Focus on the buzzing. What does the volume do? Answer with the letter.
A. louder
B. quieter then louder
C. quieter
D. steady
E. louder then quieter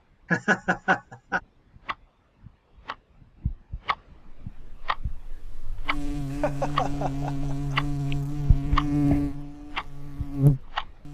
A.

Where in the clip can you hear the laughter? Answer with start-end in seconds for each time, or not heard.
0.3-1.4, 6.3-7.8.